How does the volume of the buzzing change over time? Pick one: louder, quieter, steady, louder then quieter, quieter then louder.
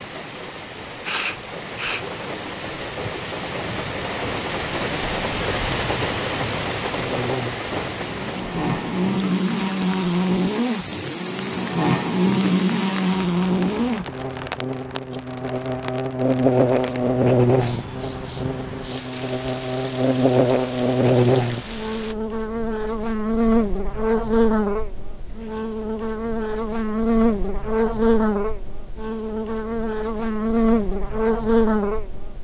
steady.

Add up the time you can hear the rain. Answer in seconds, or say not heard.
22 s.